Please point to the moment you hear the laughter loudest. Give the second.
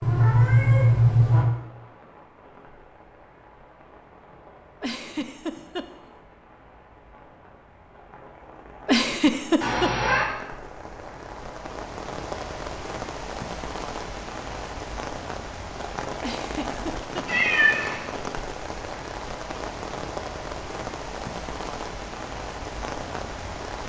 9 s.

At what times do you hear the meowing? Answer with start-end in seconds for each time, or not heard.
0.0-1.4, 9.6-10.2, 17.2-18.1.